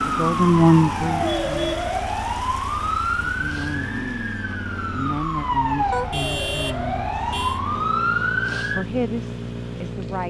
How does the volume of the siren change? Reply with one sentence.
The loudness of the siren goes down, then up.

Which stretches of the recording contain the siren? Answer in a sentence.
The siren can be heard from 0.0 to 8.8 s.